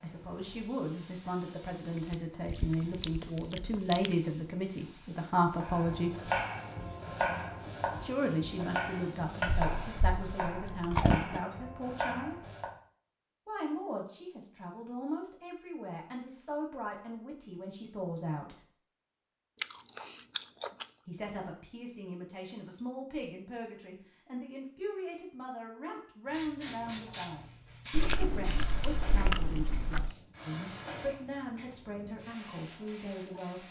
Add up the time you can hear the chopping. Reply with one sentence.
You can hear the chopping for 7 seconds altogether.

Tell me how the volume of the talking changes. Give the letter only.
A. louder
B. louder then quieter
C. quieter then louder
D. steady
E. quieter
E.